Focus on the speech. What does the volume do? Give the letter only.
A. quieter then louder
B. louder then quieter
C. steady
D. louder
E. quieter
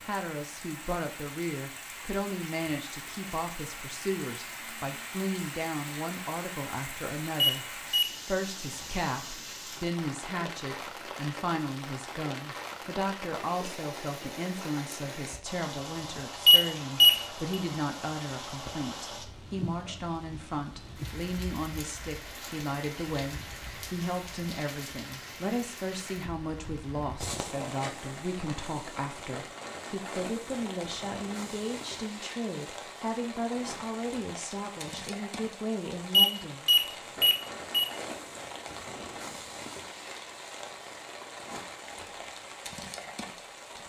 C.